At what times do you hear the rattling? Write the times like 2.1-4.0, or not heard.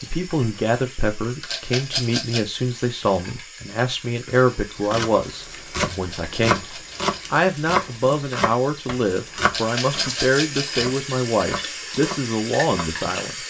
1.4-2.4, 5.9-7.2, 9.5-11.0.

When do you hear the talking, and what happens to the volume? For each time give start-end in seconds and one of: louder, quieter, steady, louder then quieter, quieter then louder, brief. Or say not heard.
0.0-13.3 steady.